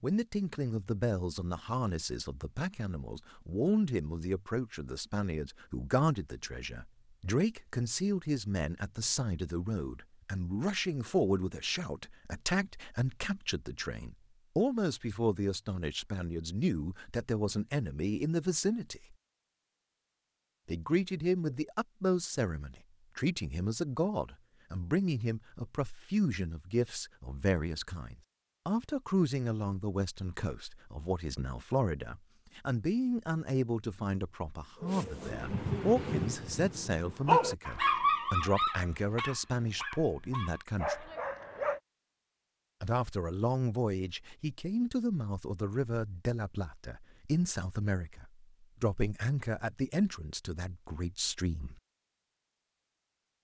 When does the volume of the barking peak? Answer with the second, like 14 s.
37 s.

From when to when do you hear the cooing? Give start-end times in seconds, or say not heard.
not heard.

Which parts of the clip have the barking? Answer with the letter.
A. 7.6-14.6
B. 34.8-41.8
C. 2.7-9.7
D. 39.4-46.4
B.